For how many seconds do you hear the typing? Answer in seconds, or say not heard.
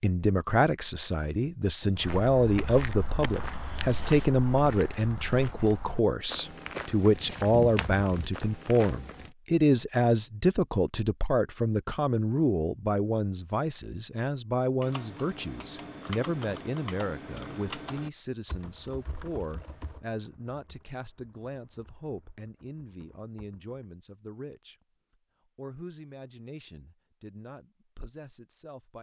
9 s.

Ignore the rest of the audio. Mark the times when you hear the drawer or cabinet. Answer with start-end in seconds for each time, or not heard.
not heard.